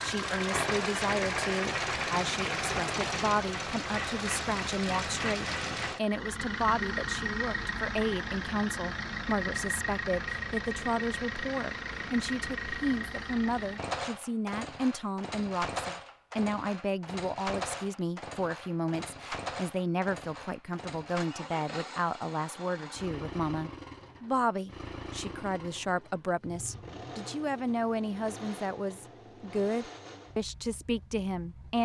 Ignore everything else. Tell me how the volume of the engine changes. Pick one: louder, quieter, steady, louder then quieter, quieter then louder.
quieter.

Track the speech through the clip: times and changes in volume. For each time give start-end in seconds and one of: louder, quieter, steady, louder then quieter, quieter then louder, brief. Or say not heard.
0.0-31.8 steady.